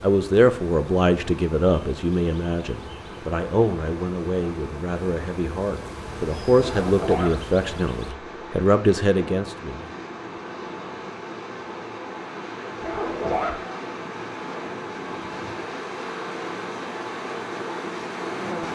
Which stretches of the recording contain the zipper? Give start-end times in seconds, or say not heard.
6.5-7.3, 12.8-13.6.